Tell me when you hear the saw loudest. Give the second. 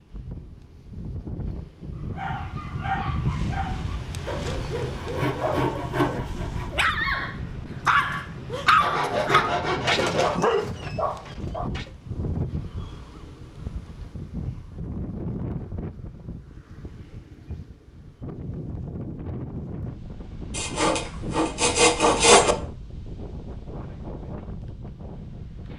22 s.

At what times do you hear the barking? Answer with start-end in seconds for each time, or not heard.
2.1-11.9.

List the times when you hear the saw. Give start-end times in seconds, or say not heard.
4.2-6.8, 8.8-10.5, 20.6-22.6.